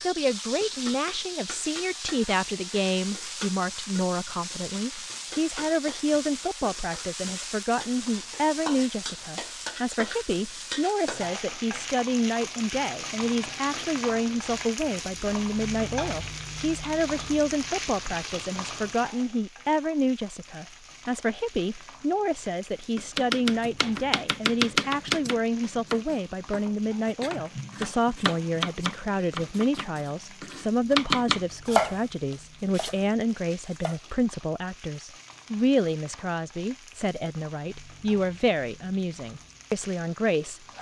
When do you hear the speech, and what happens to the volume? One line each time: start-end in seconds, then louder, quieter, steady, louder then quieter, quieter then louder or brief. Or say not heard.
0.0-40.7 steady.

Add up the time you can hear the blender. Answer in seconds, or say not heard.
not heard.